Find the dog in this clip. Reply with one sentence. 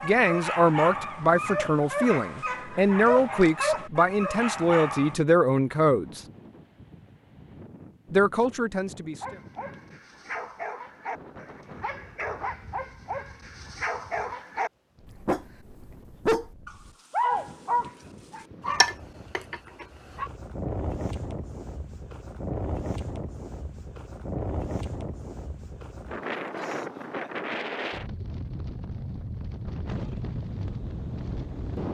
The dog can be heard from 0.0 to 5.2 s and from 9.2 to 20.3 s.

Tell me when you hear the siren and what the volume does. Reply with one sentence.
The siren can't be heard in this clip.